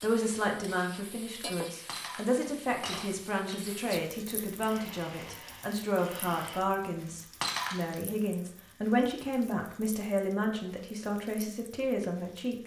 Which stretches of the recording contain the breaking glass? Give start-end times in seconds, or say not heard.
1.9-3.7, 7.4-8.0.